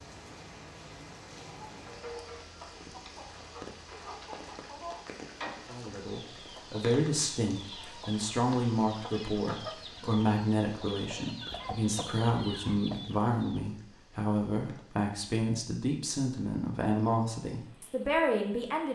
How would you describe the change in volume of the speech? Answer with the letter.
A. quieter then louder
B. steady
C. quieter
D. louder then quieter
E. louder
B.